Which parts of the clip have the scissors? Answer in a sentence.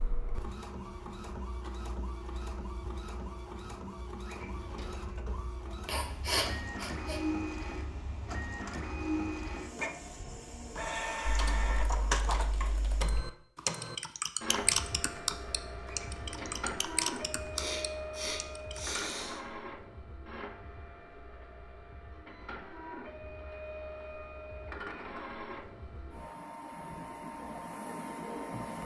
You can't hear the scissors here.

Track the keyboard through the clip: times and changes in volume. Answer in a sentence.
You can hear the keyboard from 11.2 to 18.9 s, getting louder then quieter.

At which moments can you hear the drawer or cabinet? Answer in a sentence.
The drawer or cabinet can be heard from 4.2 to 5.2 s and from 15.8 to 16.8 s.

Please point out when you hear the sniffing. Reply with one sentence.
You can hear the sniffing from 5.8 to 7.2 s and from 17.6 to 19.4 s.